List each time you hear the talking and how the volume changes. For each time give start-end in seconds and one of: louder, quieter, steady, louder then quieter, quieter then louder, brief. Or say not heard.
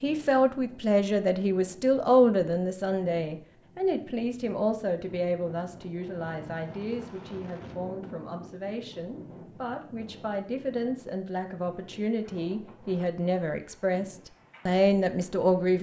0.0-15.7 quieter then louder.